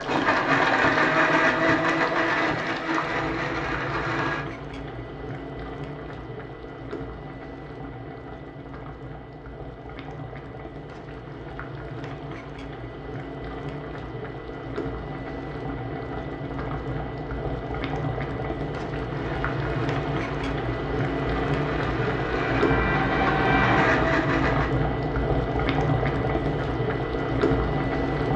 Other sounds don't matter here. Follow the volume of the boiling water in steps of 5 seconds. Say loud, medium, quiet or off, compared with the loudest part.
medium, quiet, medium, medium, loud, loud.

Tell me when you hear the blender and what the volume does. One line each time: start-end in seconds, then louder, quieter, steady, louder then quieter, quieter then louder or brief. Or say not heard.
0.0-4.5 quieter
19.1-24.7 louder.